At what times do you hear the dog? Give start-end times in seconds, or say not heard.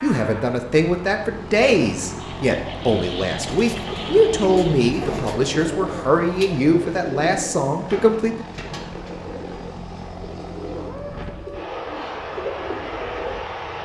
not heard.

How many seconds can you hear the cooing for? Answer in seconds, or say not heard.
10 s.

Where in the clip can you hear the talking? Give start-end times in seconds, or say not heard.
0.0-8.4.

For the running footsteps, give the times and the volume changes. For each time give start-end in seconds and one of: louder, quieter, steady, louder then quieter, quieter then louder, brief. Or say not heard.
not heard.